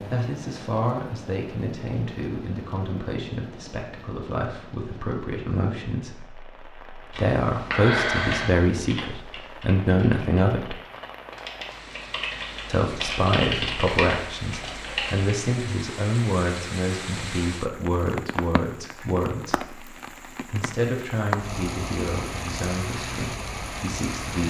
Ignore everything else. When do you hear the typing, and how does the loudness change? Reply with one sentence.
The typing can be heard from 7.1 to 15.3 s, getting quieter then louder.